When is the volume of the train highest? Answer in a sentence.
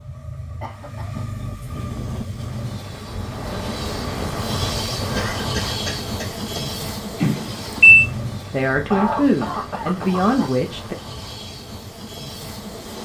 The volume of the train peaks at 5 seconds.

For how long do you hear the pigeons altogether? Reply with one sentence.
The pigeons can't be heard in this clip.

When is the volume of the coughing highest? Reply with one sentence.
The volume of the coughing peaks at 9 seconds.